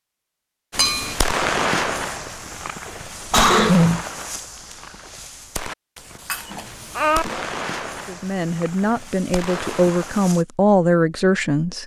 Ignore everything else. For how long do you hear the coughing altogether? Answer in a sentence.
The coughing can be heard for 2 seconds in total.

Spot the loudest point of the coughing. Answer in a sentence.
The loudest moment of the coughing is at 4 seconds.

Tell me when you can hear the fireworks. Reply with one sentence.
You can hear the fireworks from 0.7 to 10.4 s.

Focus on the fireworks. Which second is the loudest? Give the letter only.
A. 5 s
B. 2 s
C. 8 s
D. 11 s
B.